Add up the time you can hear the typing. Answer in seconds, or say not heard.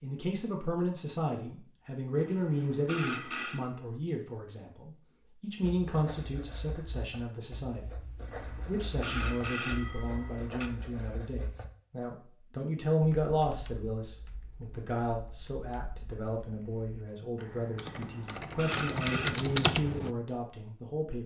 7 s.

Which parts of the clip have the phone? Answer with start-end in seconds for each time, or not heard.
2.1-3.6, 8.2-10.7, 17.9-19.4.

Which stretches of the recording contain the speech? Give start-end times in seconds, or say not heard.
0.0-21.2.